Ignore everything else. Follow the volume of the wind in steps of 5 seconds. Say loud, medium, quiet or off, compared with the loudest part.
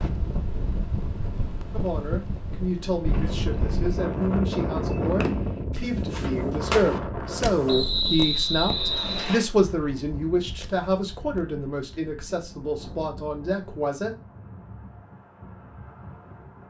loud, loud, quiet, quiet.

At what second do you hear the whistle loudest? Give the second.
8 s.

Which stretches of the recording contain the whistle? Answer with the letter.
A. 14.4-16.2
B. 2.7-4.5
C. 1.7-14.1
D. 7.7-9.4
D.